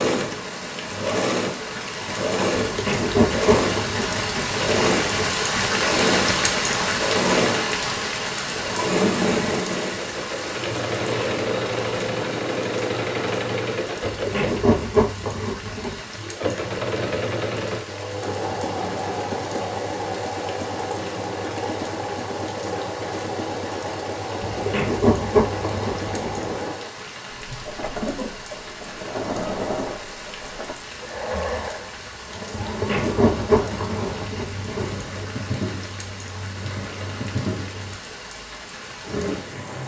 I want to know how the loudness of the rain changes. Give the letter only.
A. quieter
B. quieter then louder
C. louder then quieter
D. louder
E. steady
A.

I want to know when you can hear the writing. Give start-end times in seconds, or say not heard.
2.5-5.3, 14.0-16.0, 24.4-26.6, 32.5-35.2.